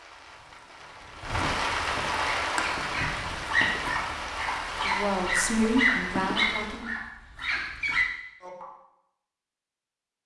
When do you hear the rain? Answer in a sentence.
The rain can be heard from 0.0 to 6.8 s.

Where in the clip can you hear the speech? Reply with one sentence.
You can hear the speech from 4.7 to 7.0 s.